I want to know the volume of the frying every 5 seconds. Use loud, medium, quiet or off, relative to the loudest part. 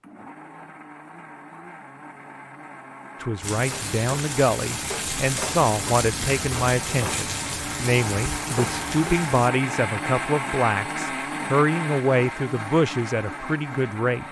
loud, loud, off.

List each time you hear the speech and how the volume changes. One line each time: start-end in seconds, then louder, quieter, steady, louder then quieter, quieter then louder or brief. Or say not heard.
3.2-14.2 steady.